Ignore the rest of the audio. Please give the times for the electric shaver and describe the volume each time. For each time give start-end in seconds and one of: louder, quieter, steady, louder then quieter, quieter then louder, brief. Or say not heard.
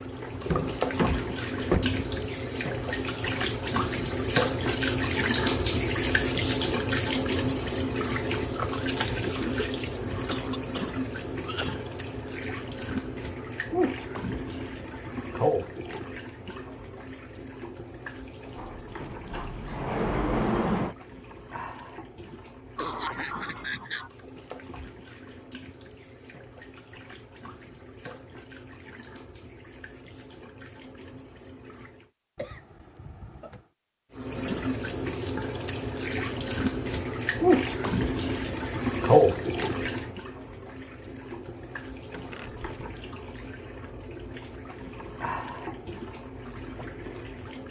not heard.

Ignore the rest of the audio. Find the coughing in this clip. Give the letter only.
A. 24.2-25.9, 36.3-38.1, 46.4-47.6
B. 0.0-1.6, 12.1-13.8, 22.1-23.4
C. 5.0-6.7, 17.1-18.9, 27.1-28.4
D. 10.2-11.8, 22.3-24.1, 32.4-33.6
D.